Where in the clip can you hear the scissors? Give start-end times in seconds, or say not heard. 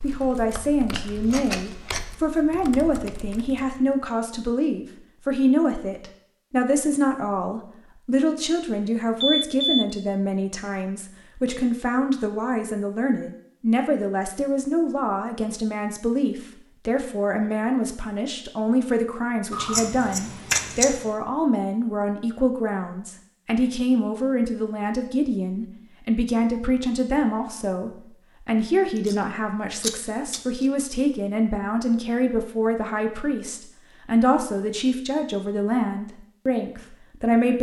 0.9-2.0, 19.5-21.1, 29.8-30.6.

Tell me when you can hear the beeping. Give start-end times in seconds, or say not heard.
9.2-9.8.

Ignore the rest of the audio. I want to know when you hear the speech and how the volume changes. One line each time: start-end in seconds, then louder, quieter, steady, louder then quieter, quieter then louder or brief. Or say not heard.
0.0-37.5 steady.